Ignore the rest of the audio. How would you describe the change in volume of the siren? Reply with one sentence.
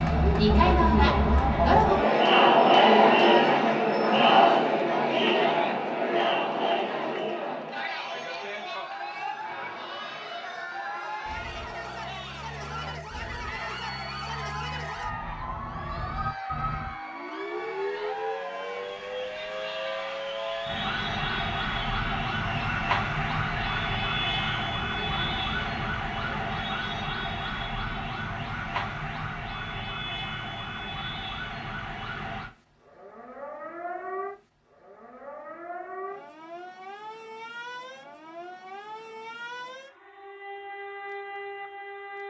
The loudness of the siren goes up, then down.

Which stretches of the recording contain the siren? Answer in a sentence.
You can hear the siren from 8.7 to 42.2 s.